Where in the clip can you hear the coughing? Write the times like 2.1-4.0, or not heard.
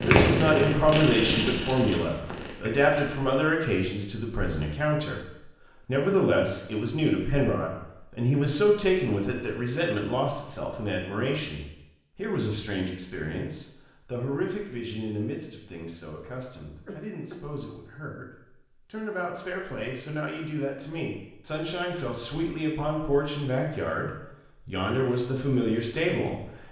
16.9-17.4.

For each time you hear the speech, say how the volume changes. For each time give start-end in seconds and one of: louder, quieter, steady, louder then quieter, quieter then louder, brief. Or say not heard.
0.1-26.6 quieter then louder.